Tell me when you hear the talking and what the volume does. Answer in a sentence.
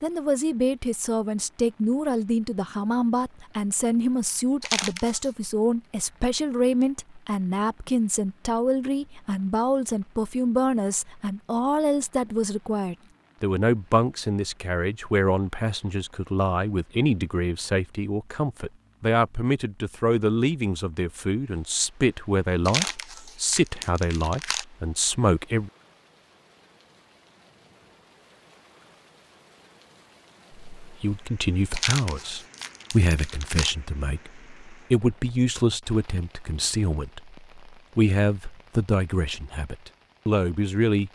The talking can be heard from 0.0 to 25.7 s, at a steady volume; and from 30.8 to 41.1 s, at a steady volume.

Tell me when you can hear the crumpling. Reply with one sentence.
The crumpling can be heard from 4.6 to 5.3 s, from 22.6 to 24.6 s and from 31.7 to 33.8 s.